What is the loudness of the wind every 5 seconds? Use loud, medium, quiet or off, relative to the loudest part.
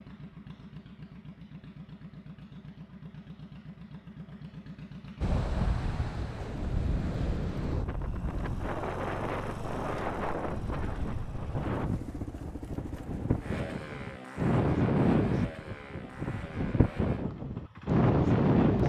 off, medium, medium, loud.